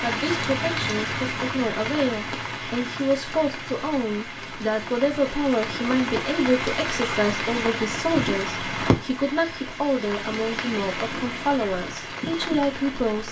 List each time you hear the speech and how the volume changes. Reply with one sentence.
You can hear the speech from 0.0 to 13.2 s, at a steady volume.